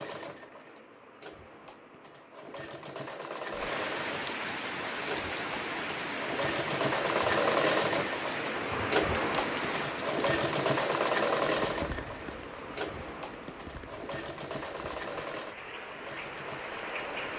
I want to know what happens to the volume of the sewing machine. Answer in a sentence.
The loudness of the sewing machine goes up, then down.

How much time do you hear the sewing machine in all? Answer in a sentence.
The sewing machine can be heard for 17 seconds in total.